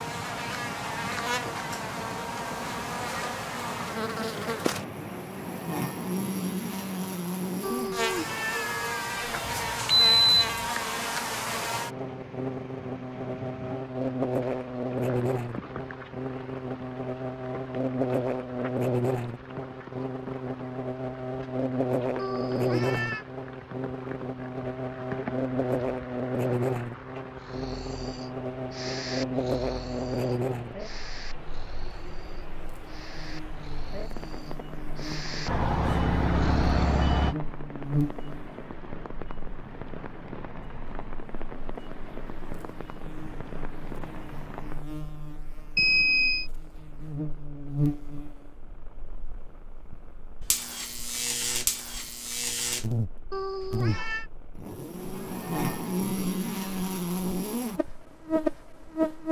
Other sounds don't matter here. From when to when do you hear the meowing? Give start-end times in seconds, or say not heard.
7.6-9.4, 22.1-23.2, 53.3-54.3.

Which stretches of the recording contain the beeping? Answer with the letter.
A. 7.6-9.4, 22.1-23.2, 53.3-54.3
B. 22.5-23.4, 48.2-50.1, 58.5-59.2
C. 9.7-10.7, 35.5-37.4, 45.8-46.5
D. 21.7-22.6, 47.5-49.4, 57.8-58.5
C.